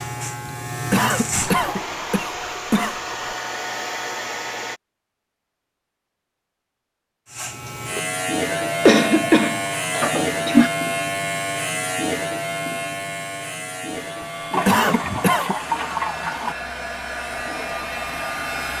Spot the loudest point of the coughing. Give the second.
9 s.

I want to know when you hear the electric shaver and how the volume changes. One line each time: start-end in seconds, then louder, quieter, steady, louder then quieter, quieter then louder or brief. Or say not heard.
0.0-1.9 brief
7.3-18.7 quieter.